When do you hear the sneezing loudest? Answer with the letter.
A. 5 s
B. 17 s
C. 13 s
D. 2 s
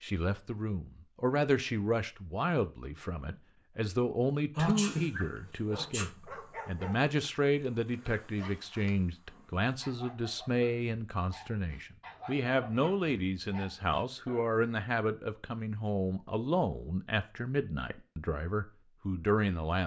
A.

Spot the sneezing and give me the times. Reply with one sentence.
The sneezing can be heard from 4.5 to 6.1 s.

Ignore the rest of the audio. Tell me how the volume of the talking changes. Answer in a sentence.
The loudness of the talking stays about the same.